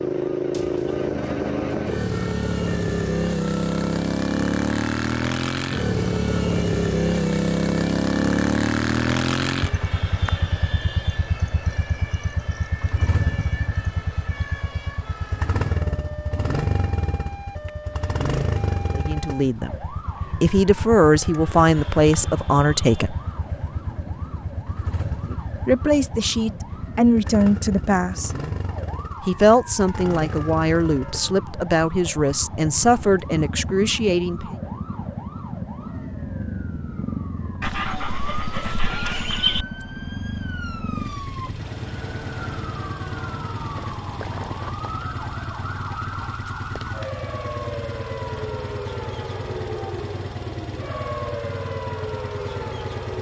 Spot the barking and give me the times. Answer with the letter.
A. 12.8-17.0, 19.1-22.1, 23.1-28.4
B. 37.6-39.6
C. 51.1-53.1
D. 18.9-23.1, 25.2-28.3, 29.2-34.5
B.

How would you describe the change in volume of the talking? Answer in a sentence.
The loudness of the talking stays about the same.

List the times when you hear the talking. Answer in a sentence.
You can hear the talking from 18.9 to 23.1 s, from 25.2 to 28.3 s and from 29.2 to 34.5 s.